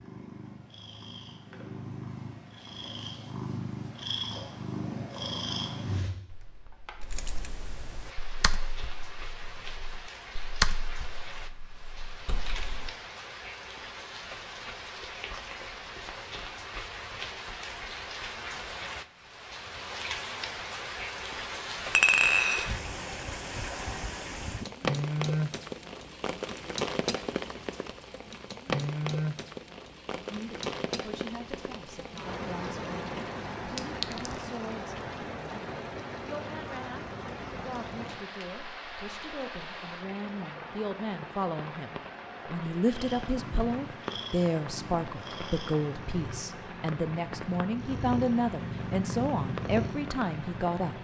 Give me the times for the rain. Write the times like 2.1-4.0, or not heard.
8.0-50.9.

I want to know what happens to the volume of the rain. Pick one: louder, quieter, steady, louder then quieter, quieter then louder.
louder then quieter.